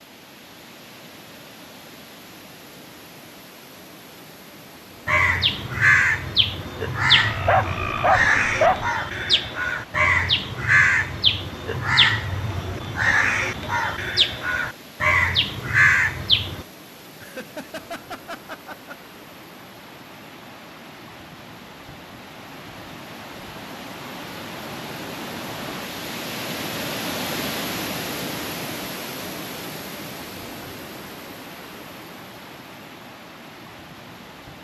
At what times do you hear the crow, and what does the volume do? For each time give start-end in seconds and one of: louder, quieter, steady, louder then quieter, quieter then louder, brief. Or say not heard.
5.0-16.6 steady.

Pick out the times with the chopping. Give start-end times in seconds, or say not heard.
not heard.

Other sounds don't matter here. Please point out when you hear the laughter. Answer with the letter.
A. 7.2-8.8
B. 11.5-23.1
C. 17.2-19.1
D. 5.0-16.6
C.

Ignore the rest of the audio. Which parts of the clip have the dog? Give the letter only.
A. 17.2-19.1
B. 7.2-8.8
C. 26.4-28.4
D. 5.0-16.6
B.